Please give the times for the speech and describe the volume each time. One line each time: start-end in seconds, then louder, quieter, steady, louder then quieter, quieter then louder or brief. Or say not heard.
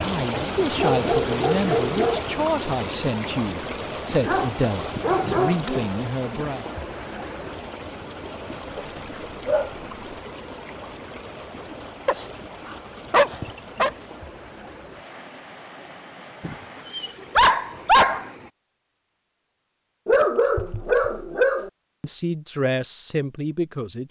0.0-6.7 steady
22.0-24.0 brief.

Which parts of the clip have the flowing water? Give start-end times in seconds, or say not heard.
0.0-18.5.